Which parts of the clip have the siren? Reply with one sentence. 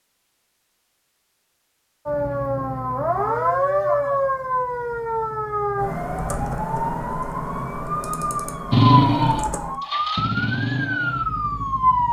You can hear the siren from 2.0 to 12.0 s.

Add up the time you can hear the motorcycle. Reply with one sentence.
You can hear the motorcycle for 3 seconds altogether.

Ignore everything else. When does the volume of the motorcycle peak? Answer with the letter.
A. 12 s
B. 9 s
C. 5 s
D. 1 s
B.